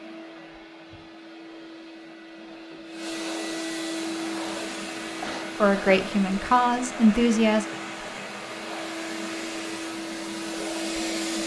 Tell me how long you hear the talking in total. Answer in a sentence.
The talking can be heard for 2 seconds in total.